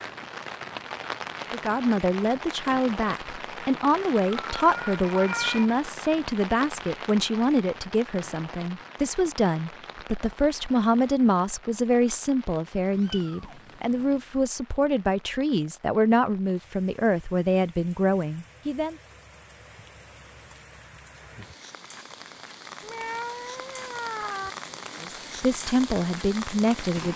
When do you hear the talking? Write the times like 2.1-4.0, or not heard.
1.5-18.9, 25.0-27.1.